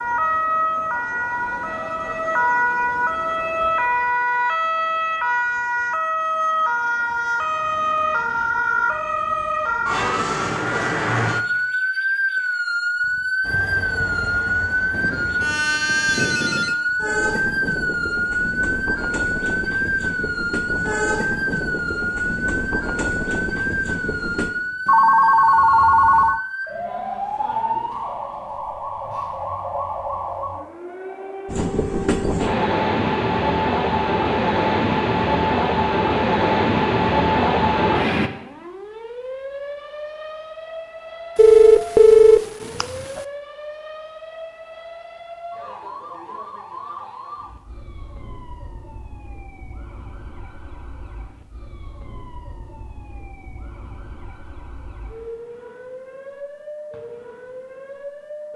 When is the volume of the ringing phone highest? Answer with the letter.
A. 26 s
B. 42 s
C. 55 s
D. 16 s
B.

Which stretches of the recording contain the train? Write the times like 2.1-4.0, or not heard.
13.4-24.5, 31.4-38.3.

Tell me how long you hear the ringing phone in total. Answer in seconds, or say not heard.
5 s.